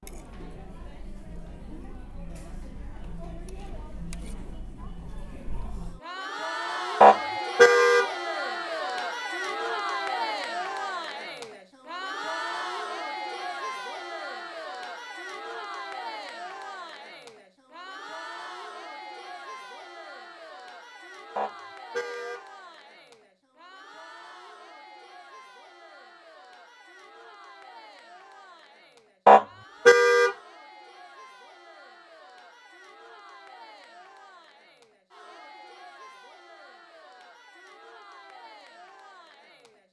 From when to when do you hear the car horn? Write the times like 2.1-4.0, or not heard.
7.0-8.1, 21.4-22.4, 29.2-30.4.